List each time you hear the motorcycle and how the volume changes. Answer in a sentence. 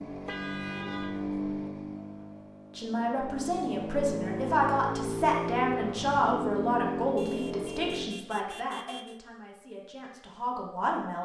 The motorcycle can be heard from 0.0 to 8.2 s, getting quieter then louder.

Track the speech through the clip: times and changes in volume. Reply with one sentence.
The speech can be heard from 2.8 to 11.2 s, getting quieter.